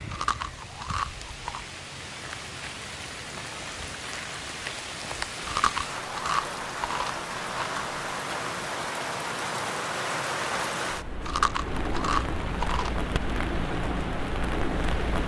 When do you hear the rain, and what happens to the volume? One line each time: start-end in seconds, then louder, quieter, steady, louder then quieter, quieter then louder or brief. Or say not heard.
0.0-15.2 louder.